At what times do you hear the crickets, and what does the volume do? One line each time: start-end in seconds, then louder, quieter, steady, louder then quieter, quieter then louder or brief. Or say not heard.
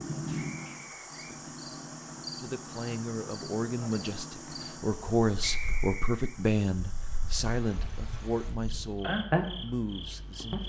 0.0-10.6 quieter then louder.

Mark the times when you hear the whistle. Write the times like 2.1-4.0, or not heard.
0.3-1.4, 5.4-6.3.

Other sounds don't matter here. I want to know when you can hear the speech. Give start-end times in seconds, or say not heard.
2.4-10.6.